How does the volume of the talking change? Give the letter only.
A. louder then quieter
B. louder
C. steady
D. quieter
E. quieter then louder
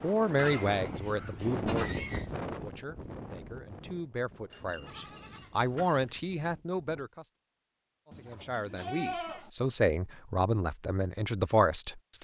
E.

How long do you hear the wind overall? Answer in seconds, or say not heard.
7 s.